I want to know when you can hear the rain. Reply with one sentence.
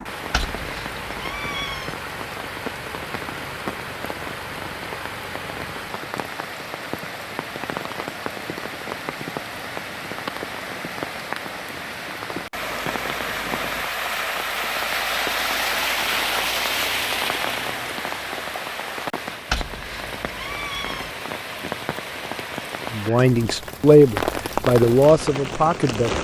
You can hear the rain from 0.0 to 26.1 s.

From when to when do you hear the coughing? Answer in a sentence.
The coughing can't be heard in this clip.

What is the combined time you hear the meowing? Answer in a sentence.
You can hear the meowing for 3 seconds altogether.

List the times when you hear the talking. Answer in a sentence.
You can hear the talking from 22.9 to 26.1 s.